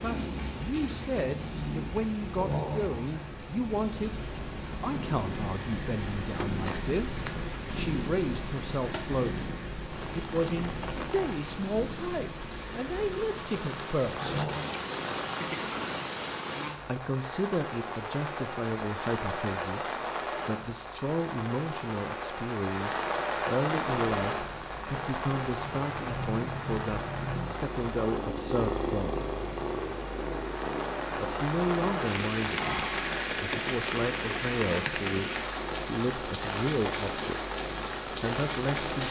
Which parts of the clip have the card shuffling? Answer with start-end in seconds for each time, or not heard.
6.7-7.3.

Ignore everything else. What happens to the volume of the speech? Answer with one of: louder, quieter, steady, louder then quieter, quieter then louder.
steady.